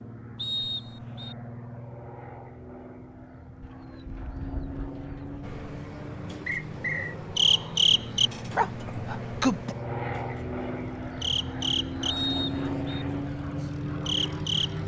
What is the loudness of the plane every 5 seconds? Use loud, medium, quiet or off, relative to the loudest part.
medium, medium, loud.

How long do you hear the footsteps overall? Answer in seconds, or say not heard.
not heard.